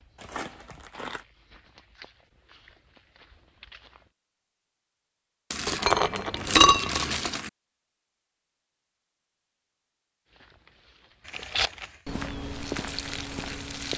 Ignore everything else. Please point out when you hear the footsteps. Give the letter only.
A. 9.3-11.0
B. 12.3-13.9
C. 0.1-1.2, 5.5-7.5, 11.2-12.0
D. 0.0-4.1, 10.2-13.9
D.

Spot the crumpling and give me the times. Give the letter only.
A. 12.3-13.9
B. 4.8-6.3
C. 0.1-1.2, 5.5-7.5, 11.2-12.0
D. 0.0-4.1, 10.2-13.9
C.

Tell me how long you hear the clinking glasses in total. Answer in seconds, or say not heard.
2 s.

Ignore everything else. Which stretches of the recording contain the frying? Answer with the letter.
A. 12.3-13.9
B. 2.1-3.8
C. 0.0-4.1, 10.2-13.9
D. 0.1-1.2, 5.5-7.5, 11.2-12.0
A.